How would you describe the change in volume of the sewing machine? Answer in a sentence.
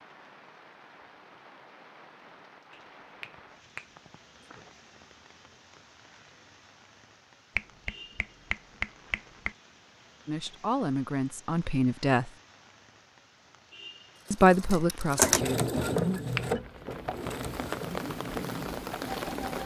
The volume of the sewing machine goes down.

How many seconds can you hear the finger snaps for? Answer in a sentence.
You can hear the finger snaps for 4 seconds altogether.